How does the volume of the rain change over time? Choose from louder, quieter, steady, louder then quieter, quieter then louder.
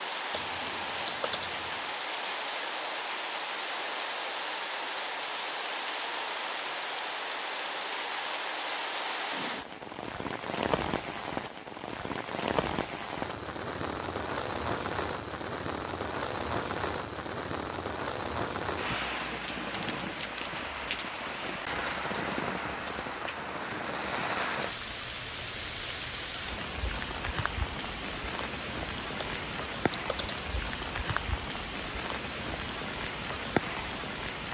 steady.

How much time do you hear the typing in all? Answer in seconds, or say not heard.
3 s.